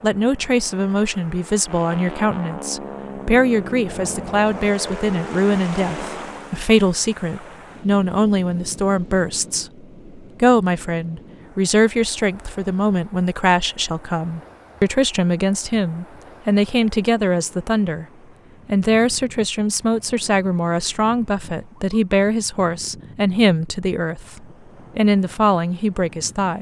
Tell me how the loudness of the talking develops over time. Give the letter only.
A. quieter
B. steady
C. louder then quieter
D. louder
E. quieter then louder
B.